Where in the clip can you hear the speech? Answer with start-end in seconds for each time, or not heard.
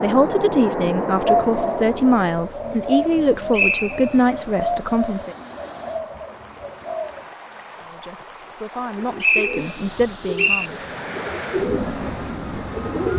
0.0-5.3, 7.8-10.9.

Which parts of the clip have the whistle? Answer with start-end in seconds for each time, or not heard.
3.5-4.1, 9.2-10.7.